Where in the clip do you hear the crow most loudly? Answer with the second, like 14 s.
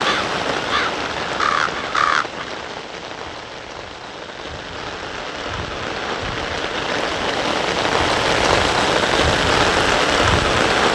2 s.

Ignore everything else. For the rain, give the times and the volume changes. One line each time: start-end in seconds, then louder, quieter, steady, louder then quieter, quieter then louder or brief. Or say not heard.
0.0-10.9 quieter then louder.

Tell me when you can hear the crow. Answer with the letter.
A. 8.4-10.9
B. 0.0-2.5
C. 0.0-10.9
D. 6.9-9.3
B.